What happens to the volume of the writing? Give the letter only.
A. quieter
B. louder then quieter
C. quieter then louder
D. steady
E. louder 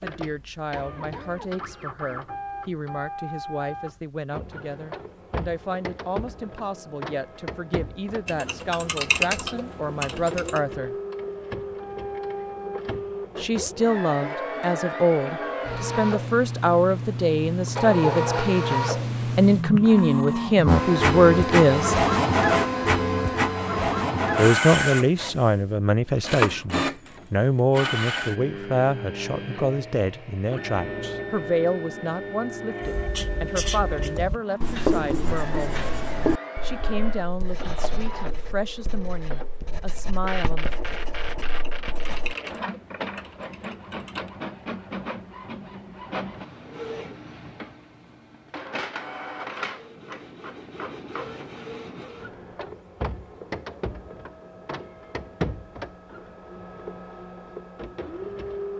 A.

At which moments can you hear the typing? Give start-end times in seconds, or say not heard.
8.2-10.6, 41.4-44.3.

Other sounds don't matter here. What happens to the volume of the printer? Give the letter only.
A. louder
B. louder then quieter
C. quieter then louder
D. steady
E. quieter
B.